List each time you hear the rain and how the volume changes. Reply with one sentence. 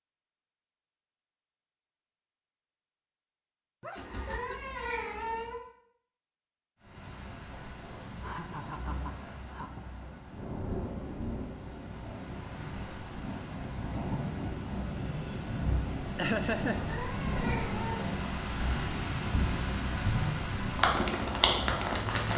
You can hear the rain from 6.8 to 22.3 s, getting louder.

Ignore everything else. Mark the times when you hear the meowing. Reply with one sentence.
The meowing can be heard from 4.0 to 5.6 s and from 16.6 to 18.1 s.